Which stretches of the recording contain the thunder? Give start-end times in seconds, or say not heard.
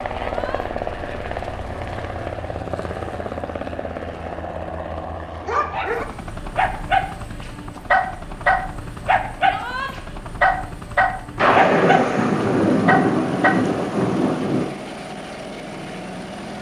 11.3-14.7.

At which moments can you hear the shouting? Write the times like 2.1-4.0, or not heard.
0.2-0.7, 9.4-9.9.